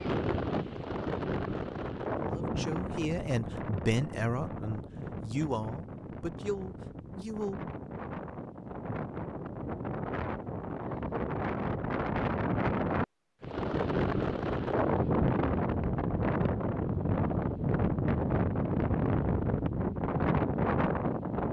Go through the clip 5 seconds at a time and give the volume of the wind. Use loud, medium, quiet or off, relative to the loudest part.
medium, medium, loud, loud, loud.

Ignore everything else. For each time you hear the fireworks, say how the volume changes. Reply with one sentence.
The fireworks can't be heard in this clip.